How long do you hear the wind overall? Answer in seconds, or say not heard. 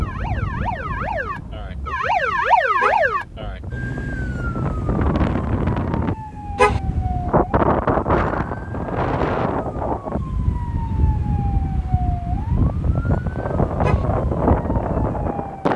16 s.